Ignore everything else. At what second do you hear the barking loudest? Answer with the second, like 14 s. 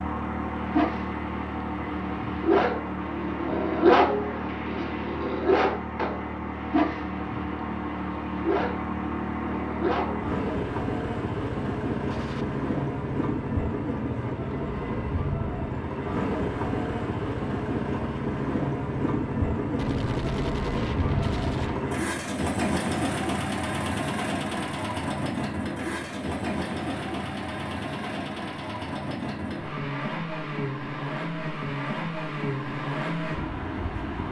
4 s.